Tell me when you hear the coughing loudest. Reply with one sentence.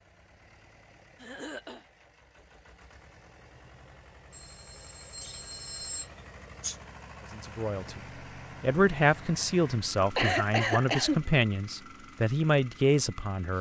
The volume of the coughing peaks at 10 seconds.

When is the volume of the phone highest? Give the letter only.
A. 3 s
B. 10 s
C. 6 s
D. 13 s
C.